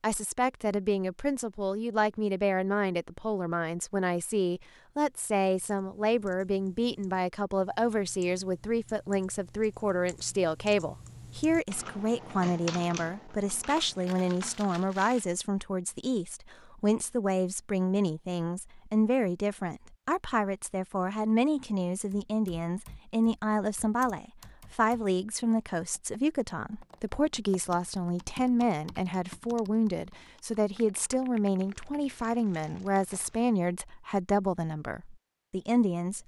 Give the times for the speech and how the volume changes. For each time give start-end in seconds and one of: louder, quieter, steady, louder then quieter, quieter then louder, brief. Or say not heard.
0.0-36.2 steady.